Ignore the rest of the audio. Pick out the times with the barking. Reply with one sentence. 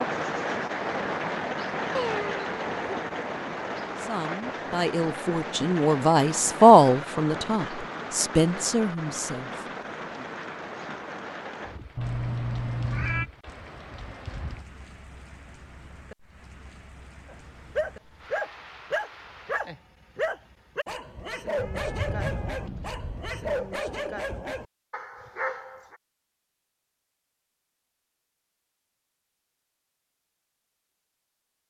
You can hear the barking from 17.2 to 25.9 s.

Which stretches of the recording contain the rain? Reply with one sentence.
The rain can be heard from 0.0 to 19.6 s.